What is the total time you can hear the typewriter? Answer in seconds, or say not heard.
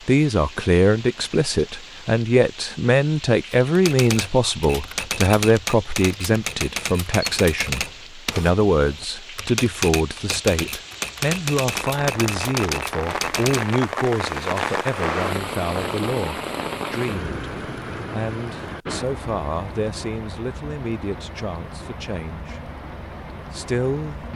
10 s.